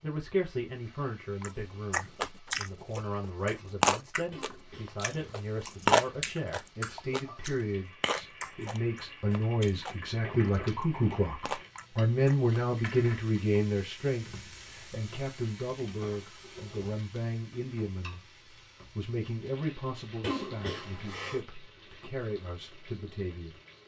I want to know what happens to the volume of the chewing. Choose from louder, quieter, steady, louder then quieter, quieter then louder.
quieter.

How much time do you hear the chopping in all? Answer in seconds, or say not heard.
not heard.